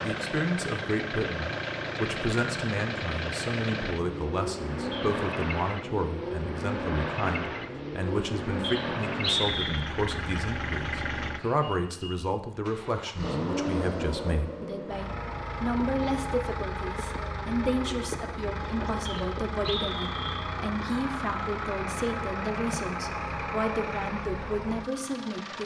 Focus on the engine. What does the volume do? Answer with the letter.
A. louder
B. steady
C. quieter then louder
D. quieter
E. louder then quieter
B.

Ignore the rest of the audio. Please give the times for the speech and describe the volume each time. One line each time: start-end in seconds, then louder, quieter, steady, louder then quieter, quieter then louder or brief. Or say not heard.
0.0-25.6 steady.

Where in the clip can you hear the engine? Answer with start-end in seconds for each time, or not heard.
0.0-25.6.